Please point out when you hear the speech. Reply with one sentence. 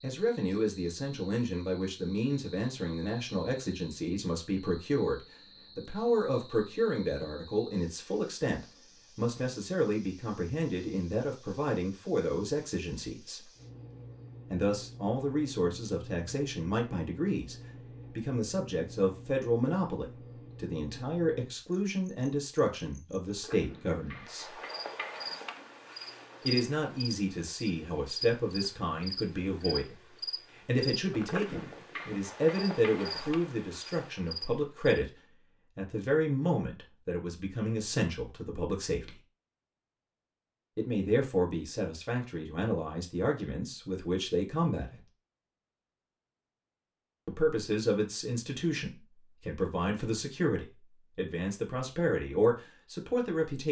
The speech can be heard from 0.0 to 13.5 s, from 14.5 to 24.6 s, from 26.4 to 39.2 s, from 40.8 to 45.0 s and from 47.2 to 53.6 s.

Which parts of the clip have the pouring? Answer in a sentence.
The pouring can't be heard in this clip.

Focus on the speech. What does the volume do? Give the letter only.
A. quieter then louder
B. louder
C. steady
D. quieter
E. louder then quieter
C.